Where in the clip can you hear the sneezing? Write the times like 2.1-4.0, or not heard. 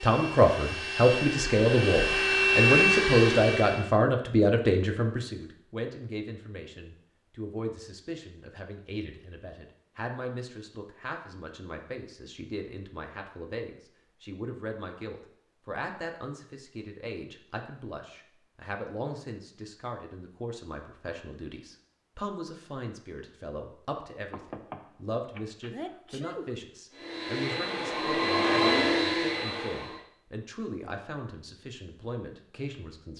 25.7-26.6.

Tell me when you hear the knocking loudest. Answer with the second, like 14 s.
25 s.